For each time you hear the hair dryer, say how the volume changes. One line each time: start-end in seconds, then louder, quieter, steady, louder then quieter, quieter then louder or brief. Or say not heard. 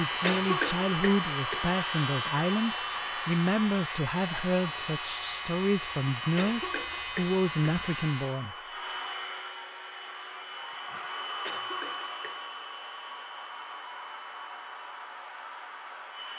0.0-16.3 quieter.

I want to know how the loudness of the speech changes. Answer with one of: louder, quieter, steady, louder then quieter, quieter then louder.
steady.